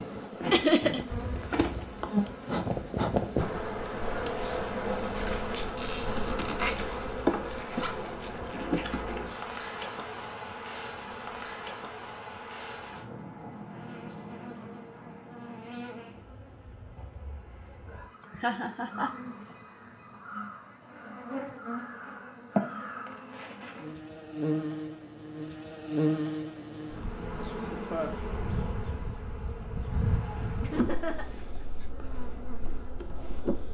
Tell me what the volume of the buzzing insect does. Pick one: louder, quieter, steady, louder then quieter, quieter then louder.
quieter then louder.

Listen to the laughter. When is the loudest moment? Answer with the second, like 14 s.
1 s.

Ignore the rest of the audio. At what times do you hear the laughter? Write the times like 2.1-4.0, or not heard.
0.5-1.0, 18.2-19.1, 30.6-31.9.